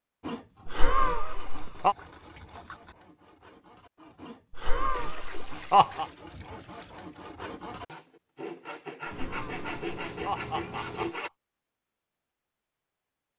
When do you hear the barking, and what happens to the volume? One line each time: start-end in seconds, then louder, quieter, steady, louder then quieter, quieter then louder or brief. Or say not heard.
not heard.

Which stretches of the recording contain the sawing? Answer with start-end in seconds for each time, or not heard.
0.2-11.3.